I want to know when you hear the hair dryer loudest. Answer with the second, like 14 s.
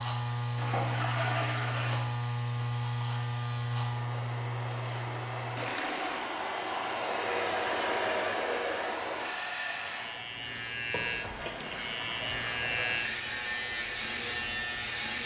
8 s.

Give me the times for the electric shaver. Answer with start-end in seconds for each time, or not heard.
0.0-15.2.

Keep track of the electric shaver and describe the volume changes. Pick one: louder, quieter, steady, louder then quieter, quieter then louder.
quieter then louder.